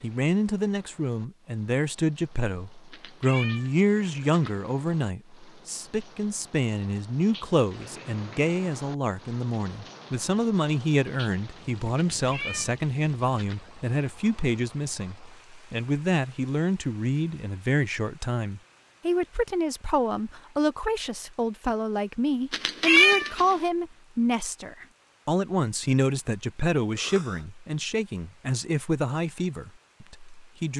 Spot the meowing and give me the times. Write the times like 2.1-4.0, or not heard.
2.9-4.5, 12.1-13.6, 22.5-23.6.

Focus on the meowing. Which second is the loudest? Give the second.
23 s.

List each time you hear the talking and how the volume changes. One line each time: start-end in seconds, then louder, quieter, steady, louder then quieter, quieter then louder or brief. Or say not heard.
0.0-30.7 steady.